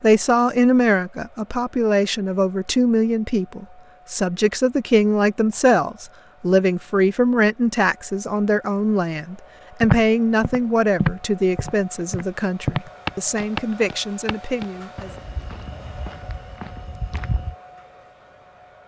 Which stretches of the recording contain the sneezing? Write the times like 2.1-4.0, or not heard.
not heard.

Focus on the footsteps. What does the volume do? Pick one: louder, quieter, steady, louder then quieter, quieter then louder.
quieter.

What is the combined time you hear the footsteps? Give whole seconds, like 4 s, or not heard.
8 s.